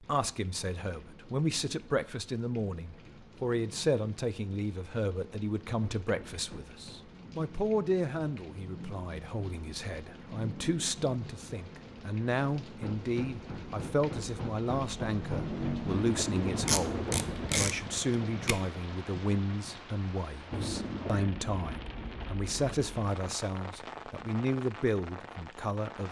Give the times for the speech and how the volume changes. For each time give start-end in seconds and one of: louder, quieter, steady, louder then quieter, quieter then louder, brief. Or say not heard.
0.0-26.0 steady.